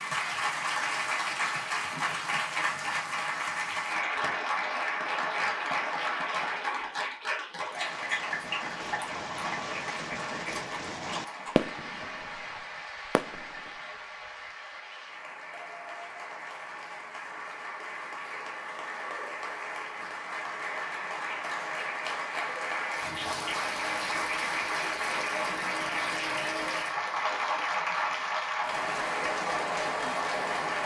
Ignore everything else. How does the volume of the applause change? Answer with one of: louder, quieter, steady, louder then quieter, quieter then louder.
quieter then louder.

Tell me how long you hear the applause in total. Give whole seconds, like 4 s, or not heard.
31 s.